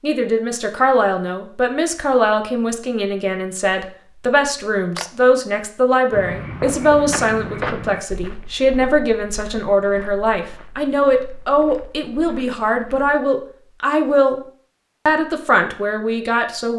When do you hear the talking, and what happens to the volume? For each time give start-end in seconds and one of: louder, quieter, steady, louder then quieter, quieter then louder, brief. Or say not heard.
0.0-14.4 steady
15.1-16.7 brief.